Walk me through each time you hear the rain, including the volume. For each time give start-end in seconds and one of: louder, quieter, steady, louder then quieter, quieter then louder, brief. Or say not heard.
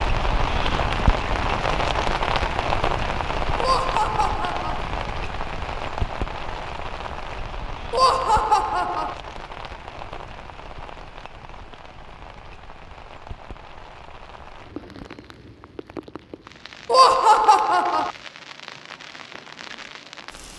0.0-20.5 quieter.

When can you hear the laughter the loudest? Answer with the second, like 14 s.
17 s.